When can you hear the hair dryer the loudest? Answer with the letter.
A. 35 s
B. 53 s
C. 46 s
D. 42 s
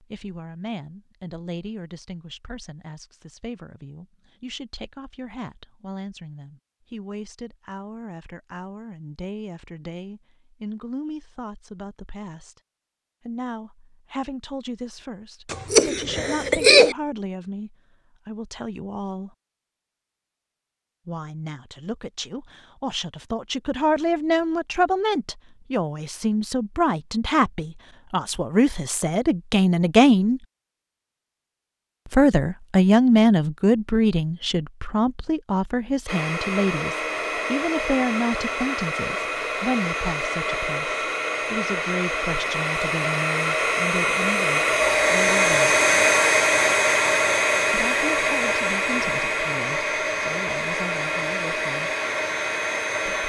C.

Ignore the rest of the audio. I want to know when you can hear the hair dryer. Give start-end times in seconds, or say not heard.
36.0-53.2.